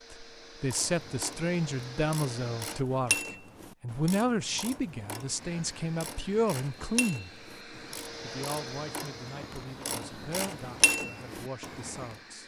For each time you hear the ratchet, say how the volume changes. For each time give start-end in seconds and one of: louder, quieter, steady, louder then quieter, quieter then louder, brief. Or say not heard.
0.7-12.2 quieter then louder.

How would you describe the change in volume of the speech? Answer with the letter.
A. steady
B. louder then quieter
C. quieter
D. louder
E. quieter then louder
C.